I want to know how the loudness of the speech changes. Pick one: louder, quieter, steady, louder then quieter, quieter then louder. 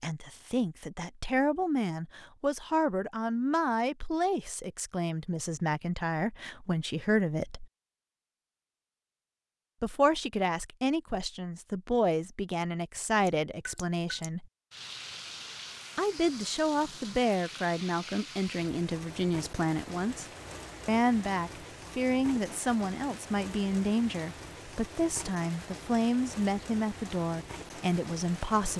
steady.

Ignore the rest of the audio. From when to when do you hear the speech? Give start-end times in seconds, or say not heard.
0.0-7.7, 9.8-14.4, 15.9-20.2, 20.9-28.7.